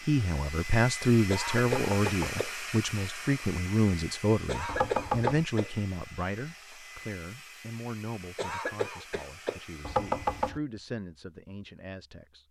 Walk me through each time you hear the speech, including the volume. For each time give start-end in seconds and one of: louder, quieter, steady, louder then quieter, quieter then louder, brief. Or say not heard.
0.0-12.4 quieter.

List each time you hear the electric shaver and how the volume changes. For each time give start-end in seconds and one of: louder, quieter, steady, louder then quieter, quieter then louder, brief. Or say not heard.
not heard.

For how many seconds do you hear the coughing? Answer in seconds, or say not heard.
4 s.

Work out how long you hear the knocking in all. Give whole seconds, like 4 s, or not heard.
2 s.